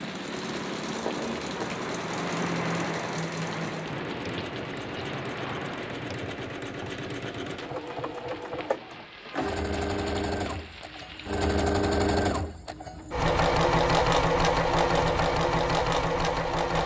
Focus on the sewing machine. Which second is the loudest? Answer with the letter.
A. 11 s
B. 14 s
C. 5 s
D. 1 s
B.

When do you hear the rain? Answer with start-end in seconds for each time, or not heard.
0.0-11.7.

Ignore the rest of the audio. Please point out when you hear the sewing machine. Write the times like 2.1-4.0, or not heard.
0.0-16.8.